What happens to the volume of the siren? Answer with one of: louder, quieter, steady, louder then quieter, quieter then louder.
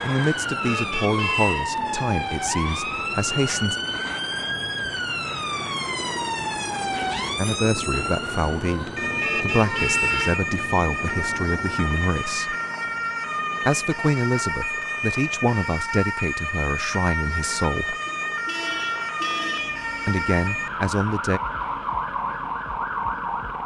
steady.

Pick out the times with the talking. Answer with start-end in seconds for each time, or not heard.
0.0-3.8, 7.3-12.6, 13.7-17.9, 20.1-21.4.